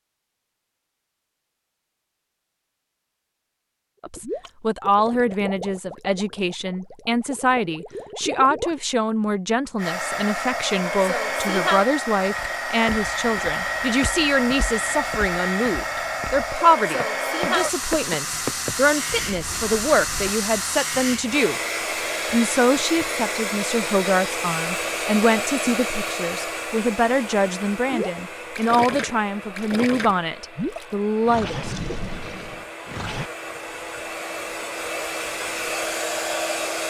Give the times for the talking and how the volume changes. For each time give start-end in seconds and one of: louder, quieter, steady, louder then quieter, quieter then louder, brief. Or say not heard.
4.0-21.6 steady
22.3-31.8 steady.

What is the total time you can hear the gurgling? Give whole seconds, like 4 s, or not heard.
10 s.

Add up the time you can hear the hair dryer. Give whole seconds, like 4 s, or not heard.
27 s.